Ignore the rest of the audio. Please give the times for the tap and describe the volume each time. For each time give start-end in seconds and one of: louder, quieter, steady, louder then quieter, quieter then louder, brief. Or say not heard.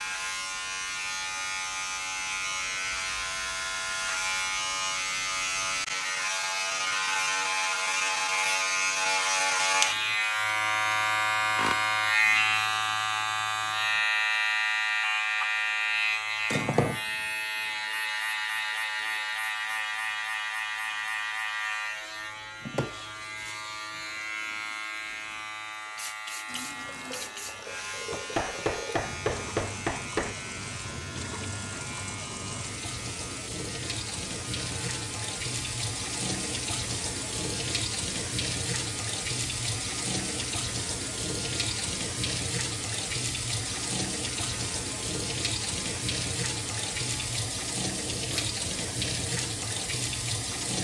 26.4-50.7 louder.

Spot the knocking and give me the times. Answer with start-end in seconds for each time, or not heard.
28.4-30.4.